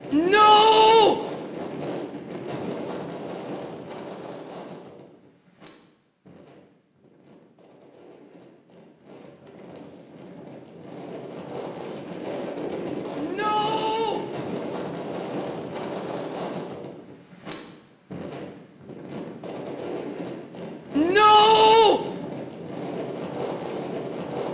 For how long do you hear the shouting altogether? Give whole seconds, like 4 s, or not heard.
3 s.